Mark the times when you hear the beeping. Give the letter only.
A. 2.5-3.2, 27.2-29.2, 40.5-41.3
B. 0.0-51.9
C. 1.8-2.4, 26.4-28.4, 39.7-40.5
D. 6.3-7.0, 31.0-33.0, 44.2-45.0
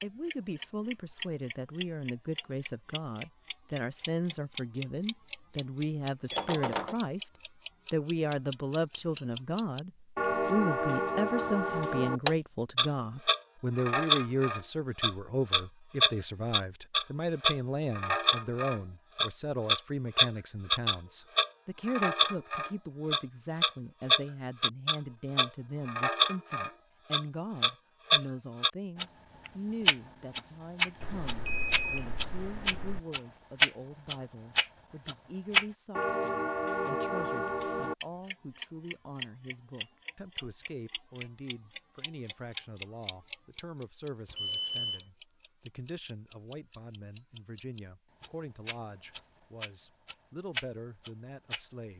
D.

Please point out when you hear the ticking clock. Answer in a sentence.
You can hear the ticking clock from 0.0 to 51.9 s.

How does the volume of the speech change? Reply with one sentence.
The loudness of the speech goes down.